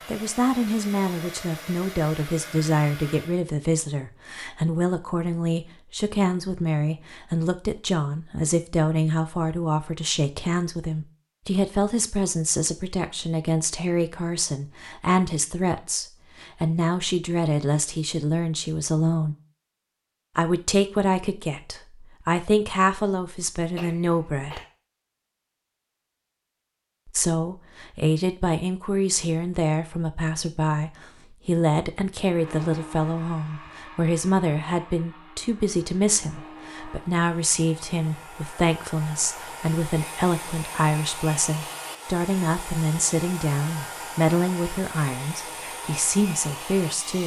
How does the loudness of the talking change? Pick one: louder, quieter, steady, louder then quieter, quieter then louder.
steady.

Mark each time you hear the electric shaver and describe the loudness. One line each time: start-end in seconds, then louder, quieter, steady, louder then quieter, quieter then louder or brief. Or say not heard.
not heard.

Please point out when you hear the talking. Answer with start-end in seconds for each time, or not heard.
0.1-19.4, 20.4-24.6, 27.1-47.2.